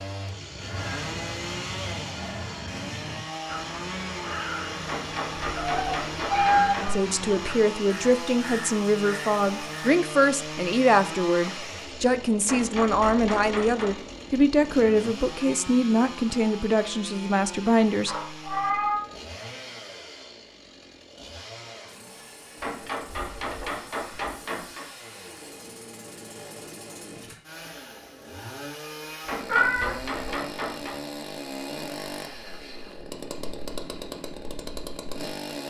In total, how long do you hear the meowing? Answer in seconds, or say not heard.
3 s.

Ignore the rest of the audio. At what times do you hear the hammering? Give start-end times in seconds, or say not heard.
4.8-6.9, 12.4-13.9, 22.6-24.9, 29.2-30.9.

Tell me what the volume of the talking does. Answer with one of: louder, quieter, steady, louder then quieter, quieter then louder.
steady.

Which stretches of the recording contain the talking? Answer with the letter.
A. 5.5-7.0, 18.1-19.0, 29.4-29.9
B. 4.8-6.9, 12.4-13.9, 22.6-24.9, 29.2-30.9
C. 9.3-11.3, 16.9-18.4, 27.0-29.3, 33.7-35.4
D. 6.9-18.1
D.